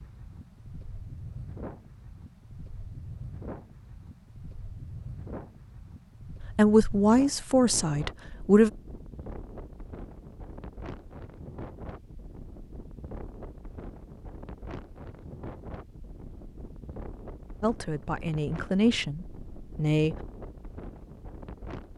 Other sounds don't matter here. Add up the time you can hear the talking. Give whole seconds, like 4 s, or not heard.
5 s.